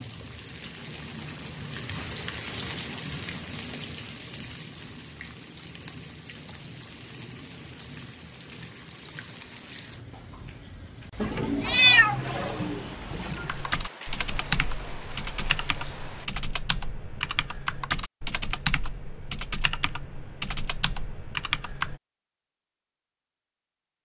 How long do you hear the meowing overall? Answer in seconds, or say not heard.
2 s.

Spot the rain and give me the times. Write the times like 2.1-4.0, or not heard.
0.0-16.3.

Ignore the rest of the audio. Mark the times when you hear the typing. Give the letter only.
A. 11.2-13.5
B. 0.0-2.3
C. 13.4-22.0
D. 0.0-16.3
C.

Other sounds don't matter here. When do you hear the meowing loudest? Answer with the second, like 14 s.
12 s.